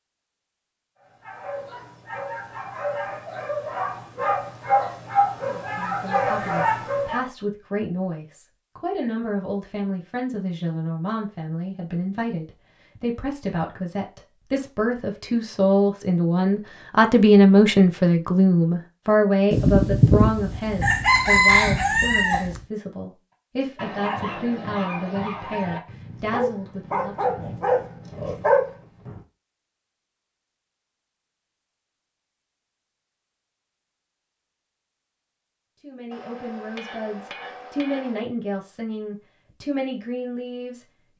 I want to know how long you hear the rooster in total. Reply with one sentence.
The rooster can be heard for 3 seconds in total.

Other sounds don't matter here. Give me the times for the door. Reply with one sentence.
The door can't be heard in this clip.